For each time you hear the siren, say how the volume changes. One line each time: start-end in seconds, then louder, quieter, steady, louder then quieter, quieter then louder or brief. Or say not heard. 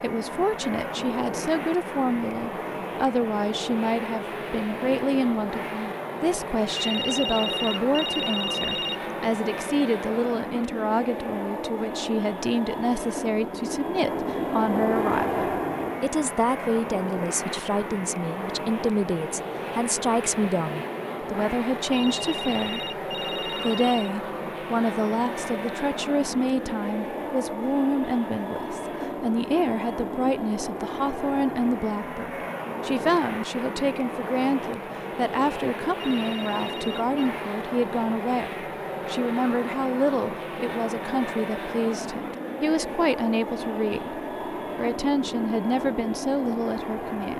not heard.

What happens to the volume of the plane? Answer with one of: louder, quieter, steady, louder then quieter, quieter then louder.
steady.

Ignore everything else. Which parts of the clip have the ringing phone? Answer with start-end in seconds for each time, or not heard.
6.8-9.1, 21.9-24.1, 36.0-37.1.